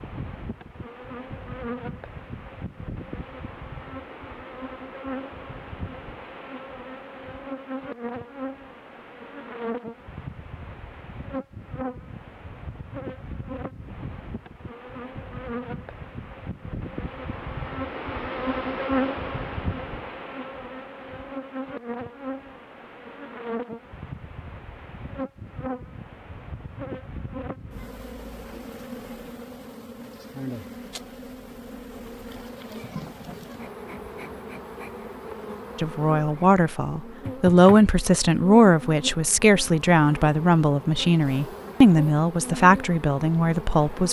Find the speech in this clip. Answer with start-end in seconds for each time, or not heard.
35.8-44.0.